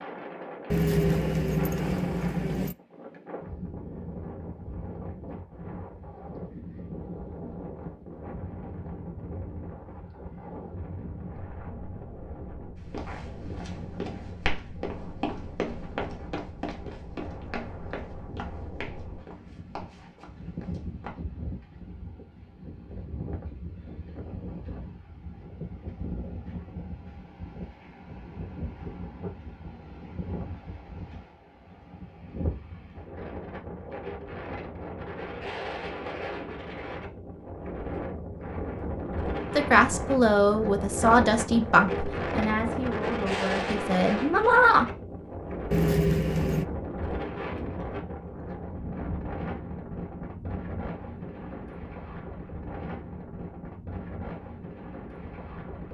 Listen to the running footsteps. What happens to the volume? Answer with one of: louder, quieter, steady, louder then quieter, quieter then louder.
quieter.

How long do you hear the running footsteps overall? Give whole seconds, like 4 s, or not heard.
8 s.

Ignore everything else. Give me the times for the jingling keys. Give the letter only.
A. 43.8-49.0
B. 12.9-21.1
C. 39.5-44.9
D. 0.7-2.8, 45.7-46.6
D.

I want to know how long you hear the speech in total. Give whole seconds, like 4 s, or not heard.
5 s.